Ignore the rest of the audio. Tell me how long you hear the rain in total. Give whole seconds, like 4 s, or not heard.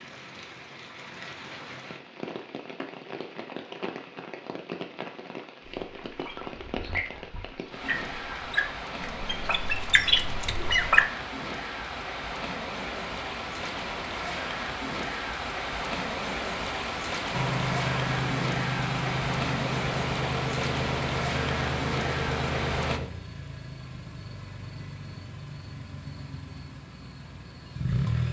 23 s.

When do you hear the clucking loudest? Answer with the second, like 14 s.
11 s.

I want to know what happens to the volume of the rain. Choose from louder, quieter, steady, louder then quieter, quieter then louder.
louder.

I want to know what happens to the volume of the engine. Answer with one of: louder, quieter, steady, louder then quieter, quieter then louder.
quieter.